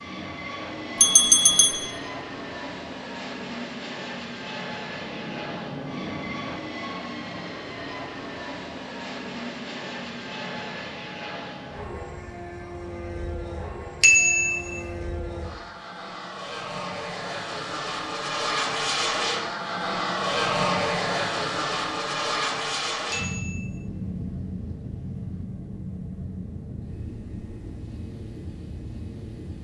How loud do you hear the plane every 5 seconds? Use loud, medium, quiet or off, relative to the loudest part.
medium, medium, medium, loud, loud, medium.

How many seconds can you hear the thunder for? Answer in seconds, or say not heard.
3 s.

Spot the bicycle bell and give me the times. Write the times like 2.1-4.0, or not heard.
1.0-1.9, 14.0-14.8, 23.1-23.9.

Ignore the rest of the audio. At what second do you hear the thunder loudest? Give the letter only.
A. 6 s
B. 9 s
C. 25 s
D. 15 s
A.